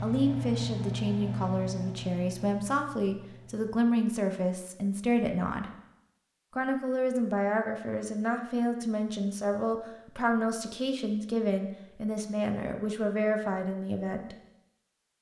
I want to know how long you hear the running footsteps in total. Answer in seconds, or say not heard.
not heard.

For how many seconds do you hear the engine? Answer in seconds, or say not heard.
4 s.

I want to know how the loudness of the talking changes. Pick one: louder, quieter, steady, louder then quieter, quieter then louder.
steady.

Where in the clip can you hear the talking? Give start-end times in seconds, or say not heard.
0.0-5.7, 6.5-14.3.